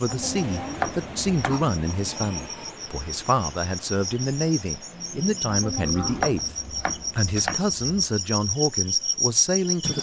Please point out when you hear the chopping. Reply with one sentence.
The chopping can be heard from 0.1 to 1.7 s and from 5.5 to 8.0 s.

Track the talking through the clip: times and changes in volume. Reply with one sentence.
You can hear the talking from 0.0 to 9.9 s, at a steady volume.